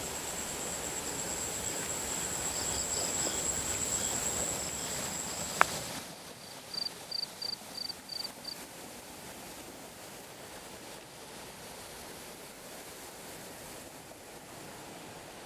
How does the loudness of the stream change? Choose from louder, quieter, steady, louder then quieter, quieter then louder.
quieter.